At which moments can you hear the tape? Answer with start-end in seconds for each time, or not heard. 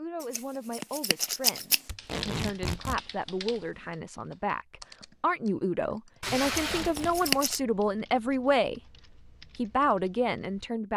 1.9-3.0, 6.2-7.4.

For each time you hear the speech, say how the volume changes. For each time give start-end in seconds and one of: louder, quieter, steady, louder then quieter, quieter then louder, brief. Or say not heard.
0.0-8.8 louder
9.6-10.9 brief.